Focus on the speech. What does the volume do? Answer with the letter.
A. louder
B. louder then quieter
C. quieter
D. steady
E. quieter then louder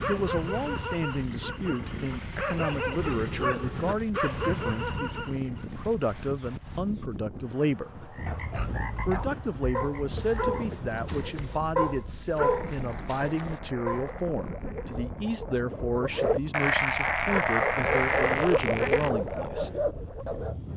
D.